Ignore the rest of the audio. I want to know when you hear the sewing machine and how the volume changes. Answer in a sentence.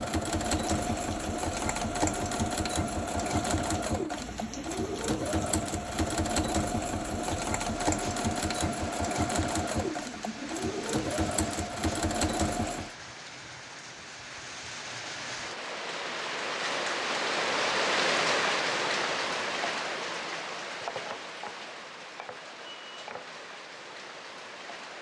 You can hear the sewing machine from 0.0 to 12.9 s, at a steady volume.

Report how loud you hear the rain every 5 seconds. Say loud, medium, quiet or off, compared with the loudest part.
quiet, quiet, quiet, loud, medium.